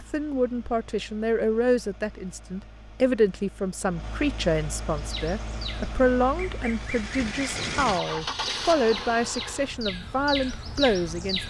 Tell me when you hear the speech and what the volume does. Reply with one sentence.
You can hear the speech from 0.0 to 11.4 s, at a steady volume.